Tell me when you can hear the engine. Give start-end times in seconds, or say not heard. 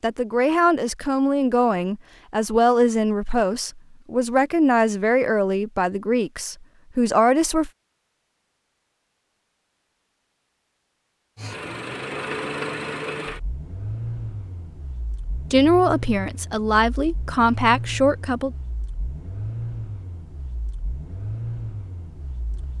11.3-22.7.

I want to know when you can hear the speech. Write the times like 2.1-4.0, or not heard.
0.0-7.7, 15.5-18.6.